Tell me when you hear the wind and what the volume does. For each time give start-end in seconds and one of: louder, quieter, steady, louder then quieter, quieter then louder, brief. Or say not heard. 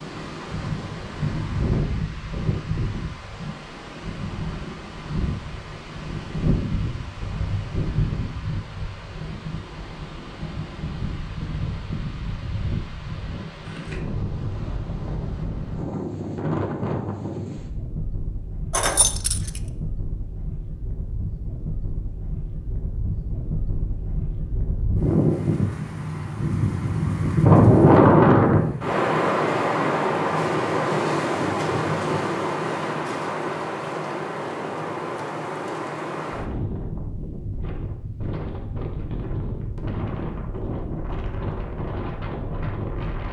0.0-43.2 louder then quieter.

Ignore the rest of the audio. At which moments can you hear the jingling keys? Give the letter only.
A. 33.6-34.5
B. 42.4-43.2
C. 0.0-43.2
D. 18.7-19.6
D.